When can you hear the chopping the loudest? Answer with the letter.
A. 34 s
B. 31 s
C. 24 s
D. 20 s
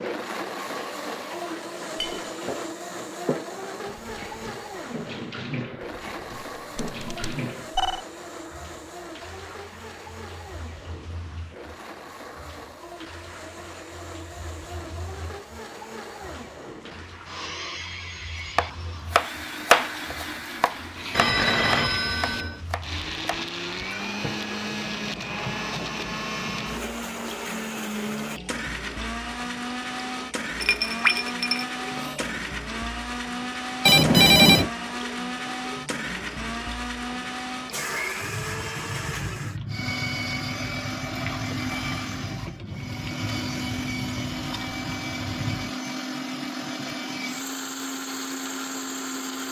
D.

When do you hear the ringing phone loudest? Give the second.
34 s.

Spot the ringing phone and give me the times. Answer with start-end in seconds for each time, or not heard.
6.5-8.1, 21.1-22.6, 33.9-34.7.